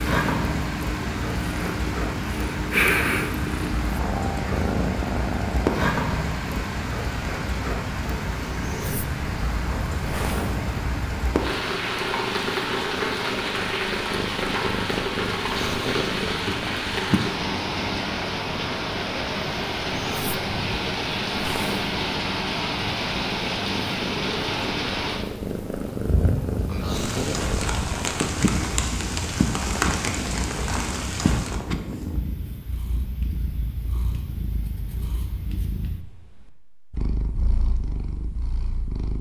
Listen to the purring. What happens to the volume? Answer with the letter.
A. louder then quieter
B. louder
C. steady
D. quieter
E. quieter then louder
D.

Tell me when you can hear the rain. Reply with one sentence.
You can hear the rain from 0.0 to 31.6 s.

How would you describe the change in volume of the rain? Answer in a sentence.
The loudness of the rain stays about the same.